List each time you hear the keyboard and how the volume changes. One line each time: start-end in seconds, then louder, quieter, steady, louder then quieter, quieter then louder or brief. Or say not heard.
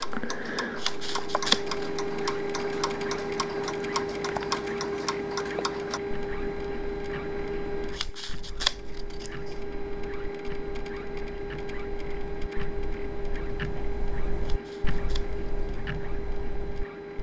not heard.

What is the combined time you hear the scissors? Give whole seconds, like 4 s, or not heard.
4 s.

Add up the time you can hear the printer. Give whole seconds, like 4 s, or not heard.
17 s.